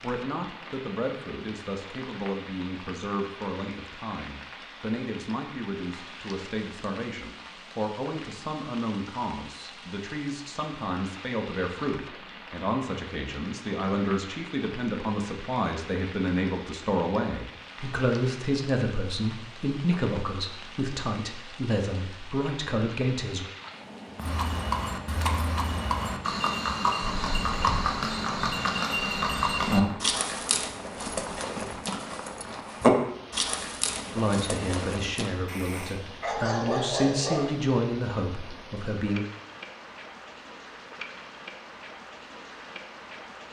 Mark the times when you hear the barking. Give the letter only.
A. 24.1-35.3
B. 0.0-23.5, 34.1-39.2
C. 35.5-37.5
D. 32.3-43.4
C.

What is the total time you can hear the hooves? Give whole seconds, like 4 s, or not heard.
11 s.